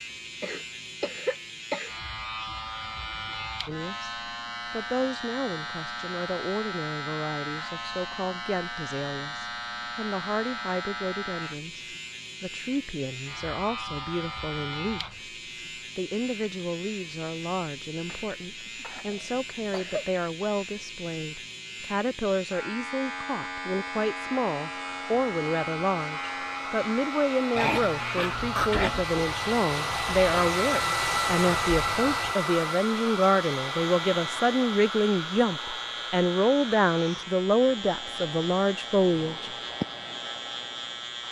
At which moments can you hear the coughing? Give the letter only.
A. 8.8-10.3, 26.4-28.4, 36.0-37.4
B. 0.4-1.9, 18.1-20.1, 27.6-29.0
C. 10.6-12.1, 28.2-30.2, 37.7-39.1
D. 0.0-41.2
B.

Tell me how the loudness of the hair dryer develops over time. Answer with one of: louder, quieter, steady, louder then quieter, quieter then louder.
louder then quieter.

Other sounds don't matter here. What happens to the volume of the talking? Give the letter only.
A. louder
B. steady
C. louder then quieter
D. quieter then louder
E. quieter
A.